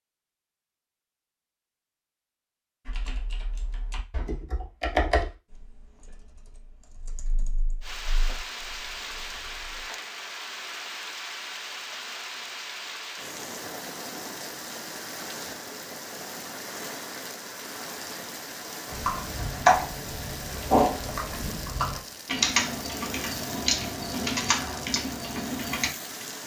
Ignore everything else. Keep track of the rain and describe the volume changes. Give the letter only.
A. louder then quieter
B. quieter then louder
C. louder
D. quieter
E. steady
E.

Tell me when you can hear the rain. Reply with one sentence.
The rain can be heard from 7.8 to 26.4 s.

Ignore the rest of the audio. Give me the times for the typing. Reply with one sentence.
The typing can be heard from 2.9 to 9.8 s and from 18.9 to 25.9 s.